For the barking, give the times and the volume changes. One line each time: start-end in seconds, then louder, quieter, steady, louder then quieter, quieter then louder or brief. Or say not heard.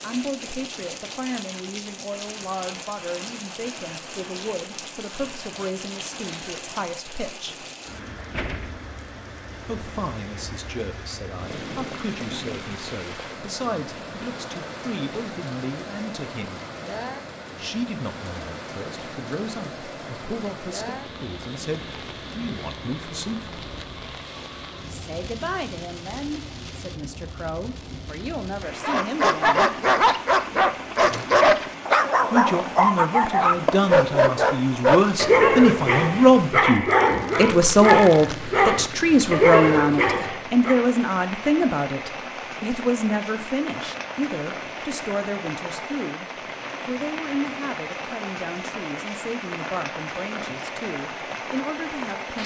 28.8-40.9 steady.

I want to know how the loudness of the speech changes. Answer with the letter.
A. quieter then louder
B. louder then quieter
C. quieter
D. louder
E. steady
B.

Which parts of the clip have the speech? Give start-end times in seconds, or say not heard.
0.0-7.7, 9.7-16.6, 17.6-23.5, 24.9-29.7, 32.3-52.4.